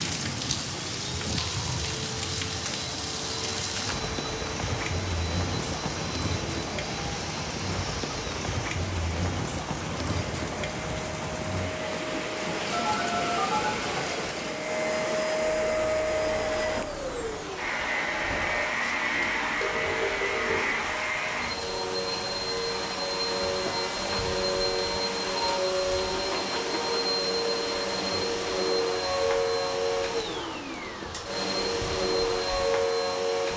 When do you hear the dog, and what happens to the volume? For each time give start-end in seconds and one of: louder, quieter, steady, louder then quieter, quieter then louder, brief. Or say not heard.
not heard.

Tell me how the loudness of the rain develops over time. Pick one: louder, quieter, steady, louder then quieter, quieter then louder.
quieter.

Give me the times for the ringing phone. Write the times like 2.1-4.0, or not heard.
12.7-13.7, 19.1-20.6.